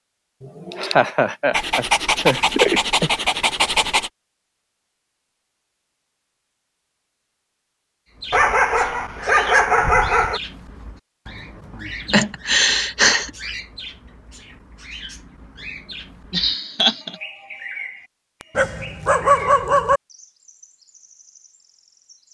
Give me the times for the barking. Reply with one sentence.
You can hear the barking from 1.5 to 4.1 s, from 8.3 to 10.4 s and from 18.6 to 20.0 s.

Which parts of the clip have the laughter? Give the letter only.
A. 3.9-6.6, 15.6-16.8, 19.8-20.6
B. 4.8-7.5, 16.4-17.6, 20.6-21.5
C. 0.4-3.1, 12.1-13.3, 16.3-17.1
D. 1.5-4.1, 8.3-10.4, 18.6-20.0
C.